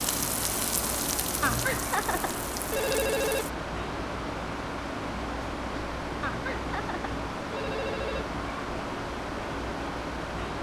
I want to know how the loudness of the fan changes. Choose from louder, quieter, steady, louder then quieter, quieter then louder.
steady.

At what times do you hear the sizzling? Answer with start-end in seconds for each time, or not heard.
0.0-3.5.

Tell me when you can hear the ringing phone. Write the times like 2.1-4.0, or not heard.
1.4-3.5, 6.2-8.2.